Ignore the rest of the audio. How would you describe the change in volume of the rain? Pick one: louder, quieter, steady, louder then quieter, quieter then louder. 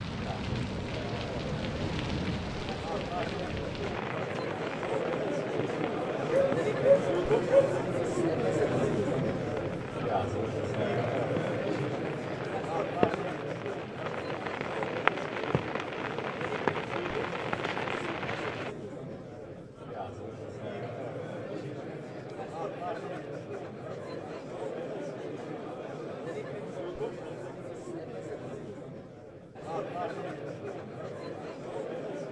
quieter then louder.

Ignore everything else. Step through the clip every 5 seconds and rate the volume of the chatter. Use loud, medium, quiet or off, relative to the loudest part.
medium, loud, loud, medium, medium, medium, medium.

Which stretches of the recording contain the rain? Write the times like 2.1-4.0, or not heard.
0.0-18.8.